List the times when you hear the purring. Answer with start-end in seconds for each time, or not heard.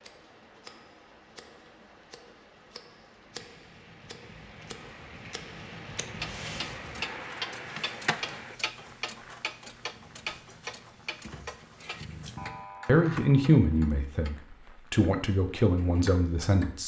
9.8-12.6.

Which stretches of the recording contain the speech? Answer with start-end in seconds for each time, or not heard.
12.8-16.8.